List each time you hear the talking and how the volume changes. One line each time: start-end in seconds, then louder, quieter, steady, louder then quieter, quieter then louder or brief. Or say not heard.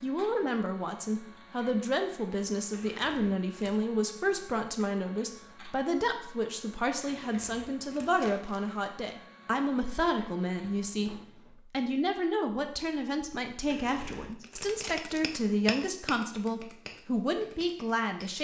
0.0-18.3 steady.